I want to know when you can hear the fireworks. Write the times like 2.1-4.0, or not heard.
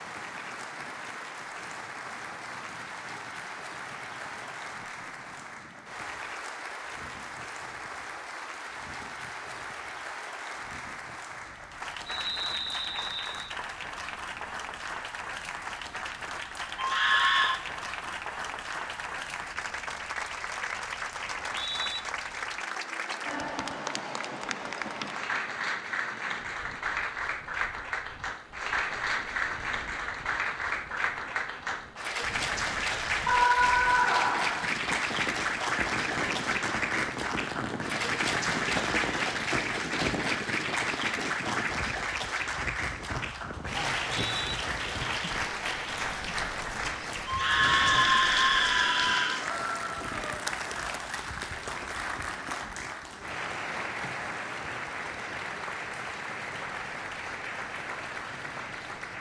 34.9-40.3.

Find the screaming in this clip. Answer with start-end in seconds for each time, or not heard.
16.8-17.6, 33.2-34.7, 47.2-49.5.